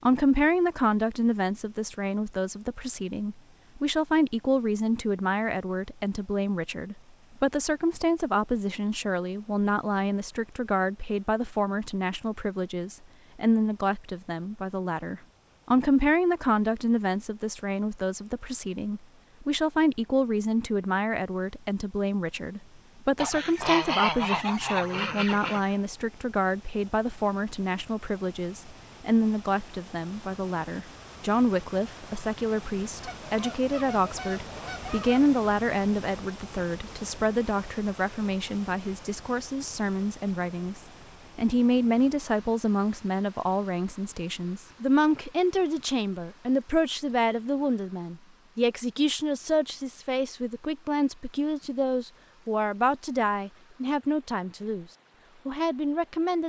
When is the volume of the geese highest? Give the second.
24 s.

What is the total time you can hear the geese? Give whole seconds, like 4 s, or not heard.
5 s.